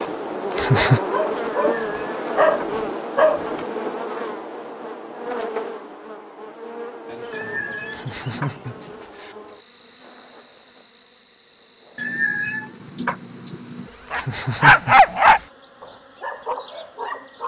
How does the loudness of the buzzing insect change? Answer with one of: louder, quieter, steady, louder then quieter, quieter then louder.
quieter.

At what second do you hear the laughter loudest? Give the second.
1 s.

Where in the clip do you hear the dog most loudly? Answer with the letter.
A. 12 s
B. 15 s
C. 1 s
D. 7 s
B.